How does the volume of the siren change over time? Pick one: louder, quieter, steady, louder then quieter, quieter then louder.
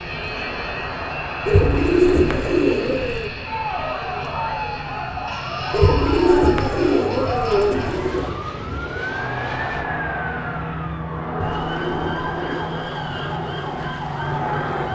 steady.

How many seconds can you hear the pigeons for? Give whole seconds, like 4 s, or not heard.
6 s.